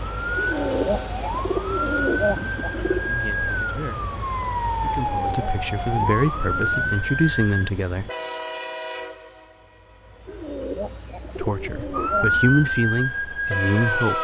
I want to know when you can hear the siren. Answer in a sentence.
The siren can be heard from 0.0 to 7.7 s and from 11.9 to 14.1 s.